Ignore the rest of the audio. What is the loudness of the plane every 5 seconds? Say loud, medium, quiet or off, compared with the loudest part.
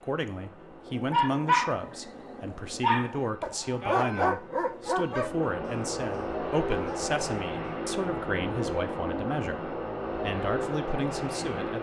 quiet, loud, loud.